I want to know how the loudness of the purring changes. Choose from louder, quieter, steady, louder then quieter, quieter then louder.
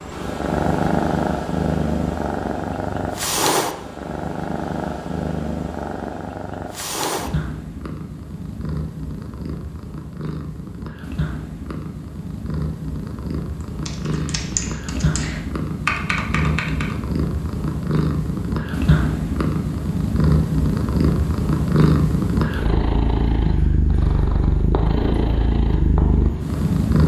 quieter then louder.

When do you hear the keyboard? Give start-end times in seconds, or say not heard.
13.8-16.9.